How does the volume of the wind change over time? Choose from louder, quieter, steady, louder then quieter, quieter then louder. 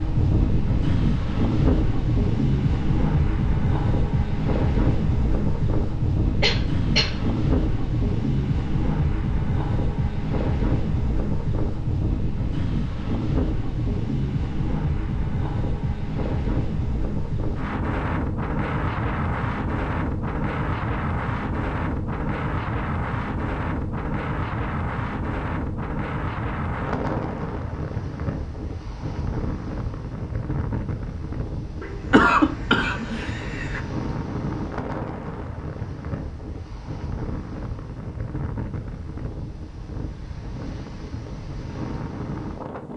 quieter.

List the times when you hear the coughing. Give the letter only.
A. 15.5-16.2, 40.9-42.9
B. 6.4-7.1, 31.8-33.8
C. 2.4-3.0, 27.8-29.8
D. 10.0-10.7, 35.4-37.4
B.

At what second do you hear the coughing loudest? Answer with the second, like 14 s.
32 s.